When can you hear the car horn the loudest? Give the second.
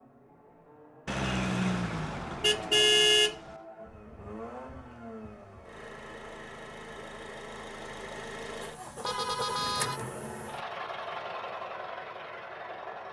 3 s.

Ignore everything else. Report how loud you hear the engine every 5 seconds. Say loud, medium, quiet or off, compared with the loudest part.
medium, loud, loud.